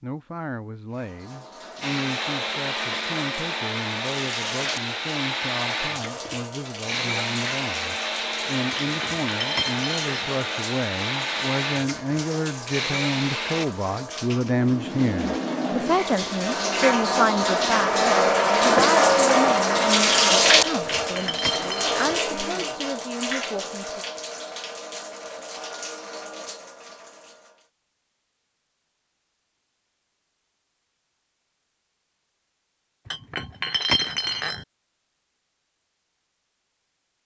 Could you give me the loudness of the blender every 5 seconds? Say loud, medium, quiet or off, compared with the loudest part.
loud, loud, loud, off, medium, off, off, off.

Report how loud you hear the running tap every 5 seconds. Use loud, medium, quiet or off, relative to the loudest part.
quiet, quiet, quiet, loud, loud, quiet, off, off.